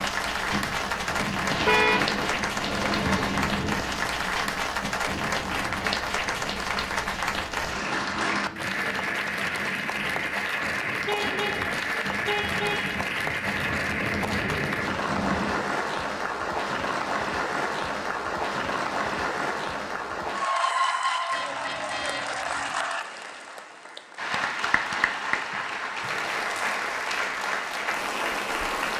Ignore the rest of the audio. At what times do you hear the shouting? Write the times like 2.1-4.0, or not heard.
not heard.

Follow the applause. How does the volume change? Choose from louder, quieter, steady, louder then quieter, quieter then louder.
steady.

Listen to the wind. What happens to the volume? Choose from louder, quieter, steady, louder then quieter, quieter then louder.
quieter then louder.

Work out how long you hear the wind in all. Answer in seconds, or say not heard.
16 s.